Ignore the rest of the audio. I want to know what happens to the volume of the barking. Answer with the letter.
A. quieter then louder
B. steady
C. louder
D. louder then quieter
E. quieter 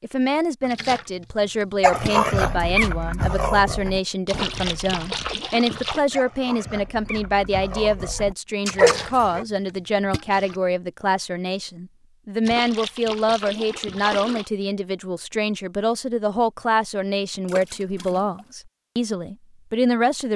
A.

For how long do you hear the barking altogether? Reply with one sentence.
You can hear the barking for 8 seconds altogether.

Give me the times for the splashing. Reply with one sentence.
The splashing can be heard from 0.6 to 2.3 s, from 4.2 to 6.0 s, from 8.7 to 10.6 s, from 12.4 to 14.5 s and from 17.4 to 18.4 s.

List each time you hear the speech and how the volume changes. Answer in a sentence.
You can hear the speech from 0.0 to 20.3 s, at a steady volume.